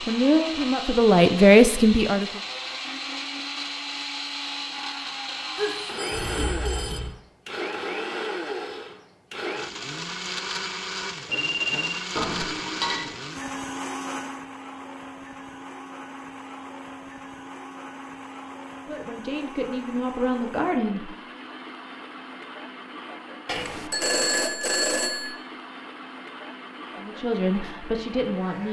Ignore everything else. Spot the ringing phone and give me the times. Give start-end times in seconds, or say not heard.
5.5-7.1, 11.2-12.1, 23.4-25.4.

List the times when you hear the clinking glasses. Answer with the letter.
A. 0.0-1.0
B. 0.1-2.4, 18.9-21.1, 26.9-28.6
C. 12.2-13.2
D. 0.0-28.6
C.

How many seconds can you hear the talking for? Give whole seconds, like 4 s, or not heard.
6 s.